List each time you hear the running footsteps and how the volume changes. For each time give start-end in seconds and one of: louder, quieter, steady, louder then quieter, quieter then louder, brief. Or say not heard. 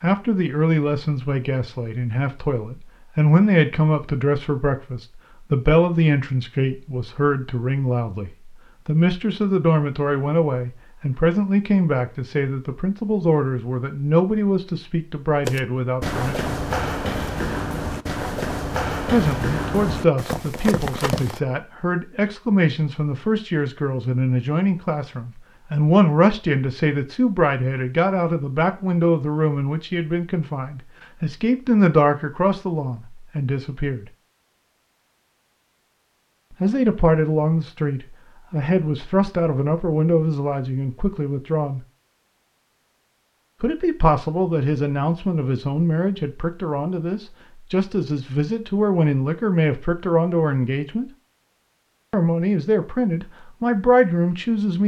15.4-21.4 steady.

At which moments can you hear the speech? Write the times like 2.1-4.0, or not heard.
0.0-16.6, 19.1-34.0, 36.6-41.8, 43.6-51.1, 52.1-54.8.